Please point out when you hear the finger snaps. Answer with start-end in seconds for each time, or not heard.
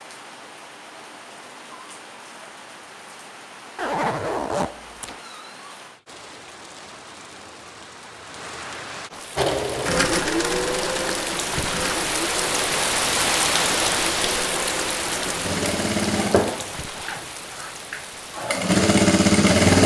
not heard.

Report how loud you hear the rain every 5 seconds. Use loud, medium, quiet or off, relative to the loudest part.
quiet, quiet, loud, medium.